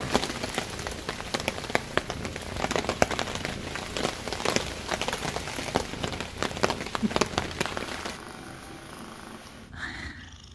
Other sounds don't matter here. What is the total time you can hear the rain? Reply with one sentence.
The rain can be heard for 8 seconds in total.